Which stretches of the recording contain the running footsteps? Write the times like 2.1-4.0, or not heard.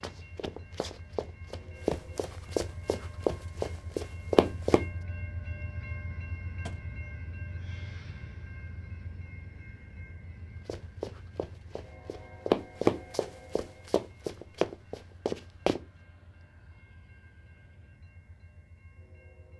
0.0-4.8, 10.7-15.8.